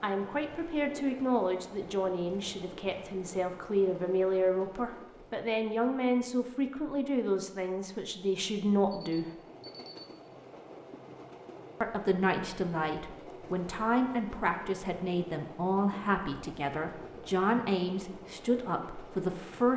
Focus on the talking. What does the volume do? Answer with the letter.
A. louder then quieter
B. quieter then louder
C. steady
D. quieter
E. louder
C.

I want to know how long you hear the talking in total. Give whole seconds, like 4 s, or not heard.
17 s.